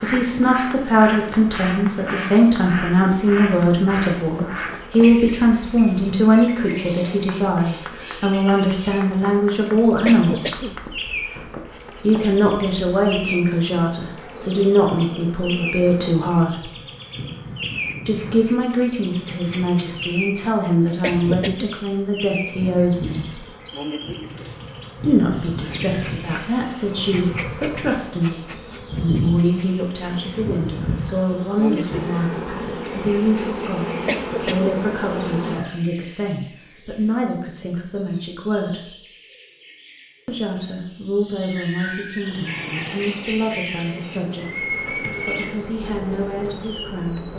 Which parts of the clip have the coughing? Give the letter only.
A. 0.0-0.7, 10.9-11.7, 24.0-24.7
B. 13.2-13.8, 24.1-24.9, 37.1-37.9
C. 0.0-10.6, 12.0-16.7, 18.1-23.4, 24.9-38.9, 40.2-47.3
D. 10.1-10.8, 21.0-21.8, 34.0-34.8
D.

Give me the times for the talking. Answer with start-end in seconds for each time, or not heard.
0.0-10.6, 12.0-16.7, 18.1-23.4, 24.9-38.9, 40.2-47.3.